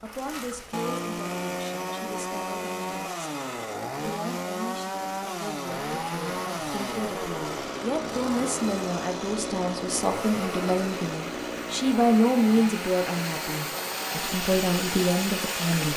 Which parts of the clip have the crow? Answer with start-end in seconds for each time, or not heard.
not heard.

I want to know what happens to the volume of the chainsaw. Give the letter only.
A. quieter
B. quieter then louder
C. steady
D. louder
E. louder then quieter
A.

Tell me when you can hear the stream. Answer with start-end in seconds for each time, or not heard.
5.7-15.9.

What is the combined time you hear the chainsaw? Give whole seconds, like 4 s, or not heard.
16 s.